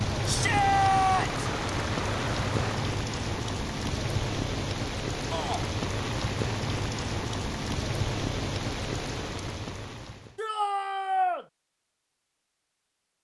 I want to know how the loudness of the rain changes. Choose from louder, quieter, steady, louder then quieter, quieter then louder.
steady.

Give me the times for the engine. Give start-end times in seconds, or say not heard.
0.0-2.9.